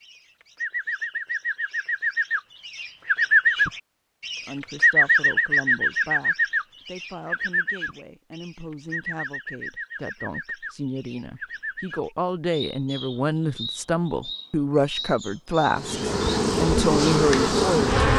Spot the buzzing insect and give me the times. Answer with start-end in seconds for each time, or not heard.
15.7-18.1.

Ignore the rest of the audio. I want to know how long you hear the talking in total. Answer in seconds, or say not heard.
14 s.